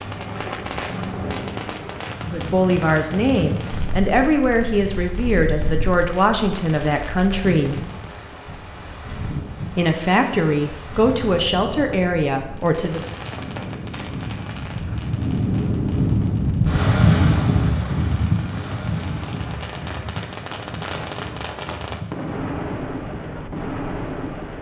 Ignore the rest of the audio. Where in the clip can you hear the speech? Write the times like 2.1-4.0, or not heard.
2.3-7.8, 9.8-13.0.